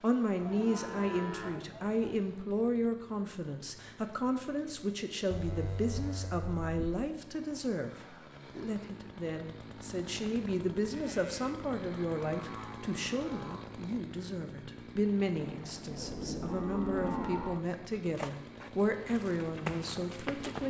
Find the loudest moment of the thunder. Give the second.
17 s.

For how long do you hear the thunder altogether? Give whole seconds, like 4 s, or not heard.
2 s.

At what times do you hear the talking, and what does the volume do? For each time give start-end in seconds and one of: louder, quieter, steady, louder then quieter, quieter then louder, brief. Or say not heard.
0.0-20.6 steady.